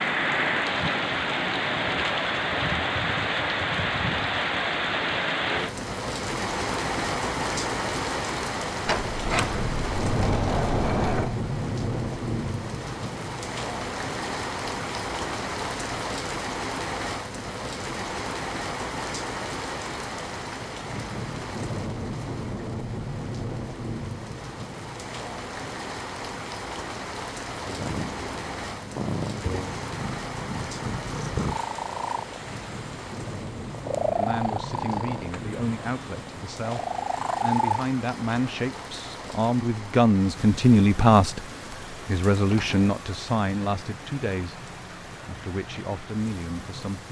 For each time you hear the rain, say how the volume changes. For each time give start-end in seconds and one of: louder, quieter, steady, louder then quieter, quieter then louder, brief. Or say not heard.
0.0-47.0 quieter.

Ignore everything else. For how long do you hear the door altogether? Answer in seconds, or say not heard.
3 s.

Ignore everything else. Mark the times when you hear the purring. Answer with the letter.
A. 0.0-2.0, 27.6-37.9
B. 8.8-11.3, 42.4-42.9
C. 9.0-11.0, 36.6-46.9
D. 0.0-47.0
A.